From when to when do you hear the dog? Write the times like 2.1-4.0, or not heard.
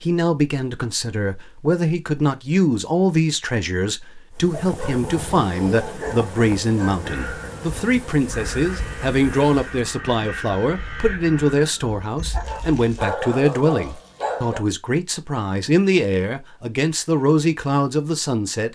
4.6-7.3, 12.4-14.6.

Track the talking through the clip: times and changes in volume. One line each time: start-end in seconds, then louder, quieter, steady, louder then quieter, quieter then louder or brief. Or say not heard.
0.0-18.7 steady.